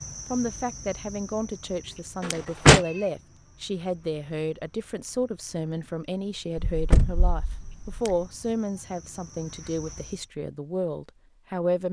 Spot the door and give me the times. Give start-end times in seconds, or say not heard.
2.2-2.8, 6.5-8.0.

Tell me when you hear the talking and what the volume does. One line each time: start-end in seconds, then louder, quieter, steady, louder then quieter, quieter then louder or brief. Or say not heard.
0.3-11.8 steady.